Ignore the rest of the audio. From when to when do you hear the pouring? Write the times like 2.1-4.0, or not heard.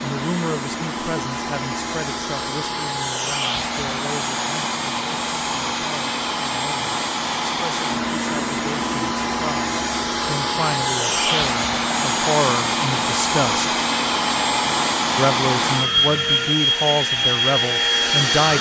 not heard.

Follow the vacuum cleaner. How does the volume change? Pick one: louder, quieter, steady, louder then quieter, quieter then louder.
louder.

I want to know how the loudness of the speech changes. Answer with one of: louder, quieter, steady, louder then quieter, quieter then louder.
quieter then louder.